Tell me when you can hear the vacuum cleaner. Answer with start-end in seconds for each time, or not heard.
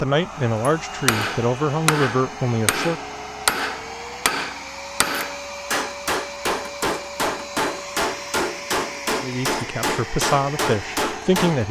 0.0-11.6.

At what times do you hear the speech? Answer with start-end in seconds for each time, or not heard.
0.0-3.0, 9.2-11.6.